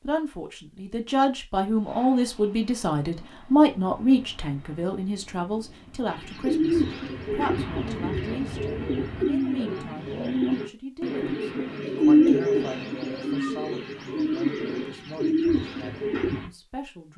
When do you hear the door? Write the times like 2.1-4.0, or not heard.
not heard.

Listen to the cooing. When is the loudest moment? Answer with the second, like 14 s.
12 s.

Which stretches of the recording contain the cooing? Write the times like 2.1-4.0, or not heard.
6.0-16.5.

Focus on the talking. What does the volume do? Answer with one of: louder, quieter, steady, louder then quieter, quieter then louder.
quieter.